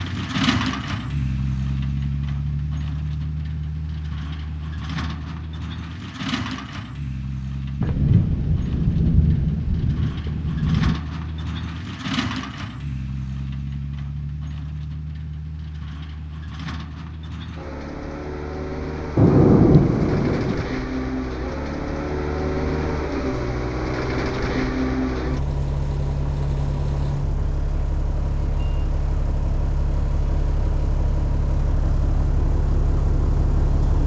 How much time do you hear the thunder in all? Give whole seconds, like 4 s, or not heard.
5 s.